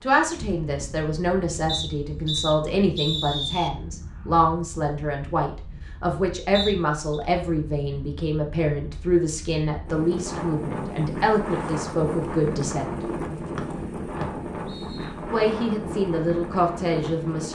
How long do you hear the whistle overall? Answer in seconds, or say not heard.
4 s.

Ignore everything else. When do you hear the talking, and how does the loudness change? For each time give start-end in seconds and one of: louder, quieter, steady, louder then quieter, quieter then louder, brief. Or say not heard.
0.0-13.1 steady
15.3-17.5 brief.